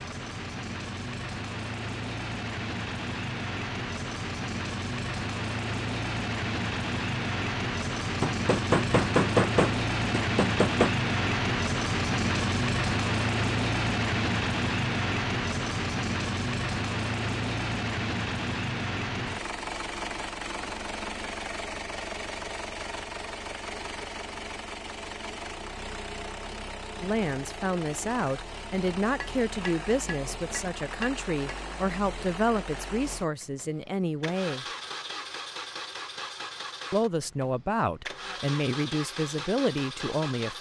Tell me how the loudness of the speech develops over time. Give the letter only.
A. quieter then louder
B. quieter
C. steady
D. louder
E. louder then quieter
C.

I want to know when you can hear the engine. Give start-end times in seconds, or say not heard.
0.0-40.5.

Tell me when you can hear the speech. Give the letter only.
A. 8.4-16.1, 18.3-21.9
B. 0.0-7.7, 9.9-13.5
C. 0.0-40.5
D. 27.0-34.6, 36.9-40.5
D.